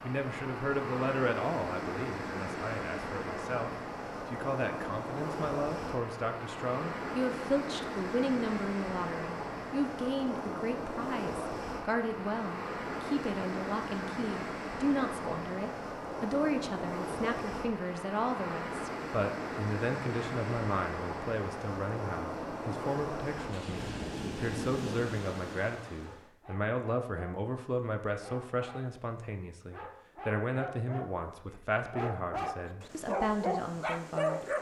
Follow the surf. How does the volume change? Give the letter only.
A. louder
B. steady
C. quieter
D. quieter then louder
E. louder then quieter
B.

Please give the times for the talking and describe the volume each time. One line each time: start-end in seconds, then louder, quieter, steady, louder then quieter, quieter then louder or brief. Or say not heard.
0.0-34.5 steady.